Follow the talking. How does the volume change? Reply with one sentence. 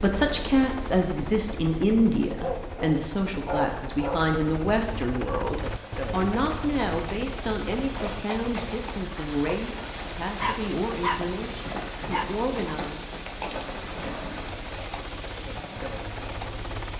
The volume of the talking goes down.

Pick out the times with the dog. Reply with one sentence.
You can hear the dog from 2.2 to 4.2 s, from 10.3 to 11.3 s and from 12.1 to 12.8 s.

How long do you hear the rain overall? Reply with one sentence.
You can hear the rain for 11 seconds altogether.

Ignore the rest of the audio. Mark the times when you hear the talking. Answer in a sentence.
You can hear the talking from 0.0 to 13.1 s.